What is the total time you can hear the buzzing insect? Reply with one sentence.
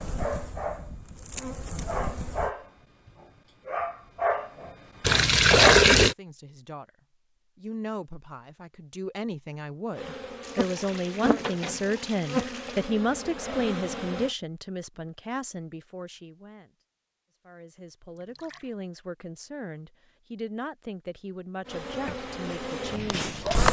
You can hear the buzzing insect for 9 seconds altogether.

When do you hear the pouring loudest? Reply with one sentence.
The volume of the pouring peaks at 6 seconds.